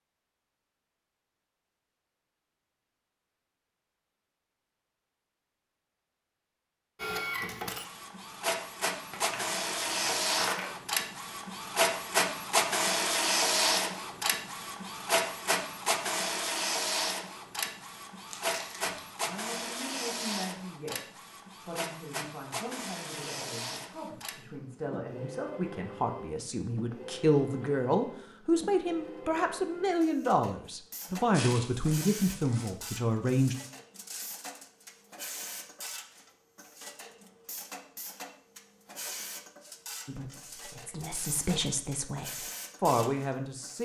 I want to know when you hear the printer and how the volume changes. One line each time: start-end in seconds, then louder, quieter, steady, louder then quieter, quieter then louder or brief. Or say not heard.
7.0-43.7 quieter.